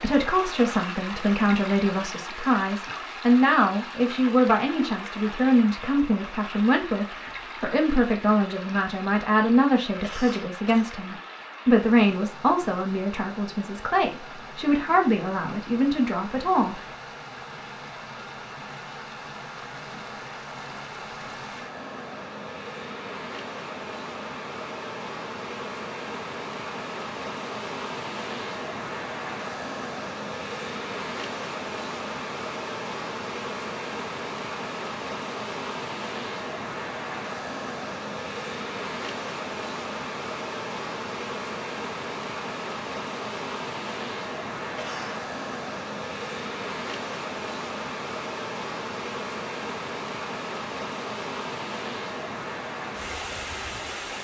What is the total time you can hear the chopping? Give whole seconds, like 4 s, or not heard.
not heard.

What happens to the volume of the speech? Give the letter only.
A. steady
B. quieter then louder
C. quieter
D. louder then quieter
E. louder
A.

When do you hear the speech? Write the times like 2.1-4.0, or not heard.
0.0-16.8.